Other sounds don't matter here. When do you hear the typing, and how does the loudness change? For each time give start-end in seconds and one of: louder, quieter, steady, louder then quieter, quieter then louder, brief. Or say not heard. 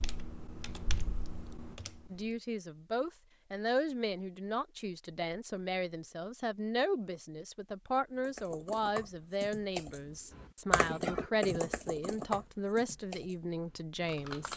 0.0-2.3 brief
8.2-14.5 louder then quieter.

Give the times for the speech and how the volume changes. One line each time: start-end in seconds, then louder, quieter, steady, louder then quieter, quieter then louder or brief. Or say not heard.
2.1-14.5 steady.